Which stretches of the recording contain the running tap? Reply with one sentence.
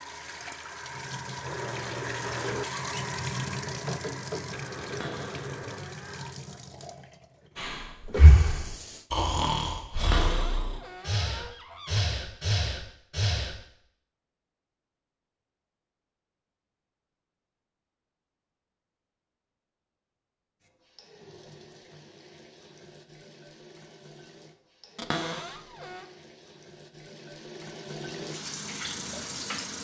You can hear the running tap from 0.0 to 9.1 s and from 20.6 to 29.7 s.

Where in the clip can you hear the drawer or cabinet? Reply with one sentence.
The drawer or cabinet can be heard from 4.8 to 6.2 s, from 10.0 to 12.0 s and from 24.9 to 26.1 s.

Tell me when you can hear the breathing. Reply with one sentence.
You can hear the breathing from 7.5 to 13.6 s.